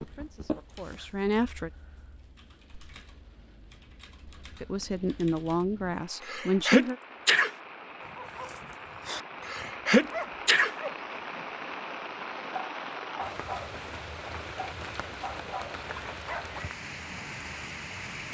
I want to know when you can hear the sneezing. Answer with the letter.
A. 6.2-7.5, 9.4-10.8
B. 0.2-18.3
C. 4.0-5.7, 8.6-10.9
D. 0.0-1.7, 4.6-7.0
A.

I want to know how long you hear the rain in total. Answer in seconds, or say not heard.
18 s.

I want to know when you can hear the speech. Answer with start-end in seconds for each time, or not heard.
0.0-1.7, 4.6-7.0.